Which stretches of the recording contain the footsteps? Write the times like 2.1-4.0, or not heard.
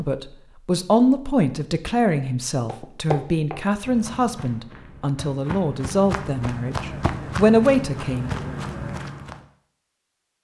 2.6-9.4.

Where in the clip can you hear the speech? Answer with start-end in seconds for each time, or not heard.
0.0-8.3.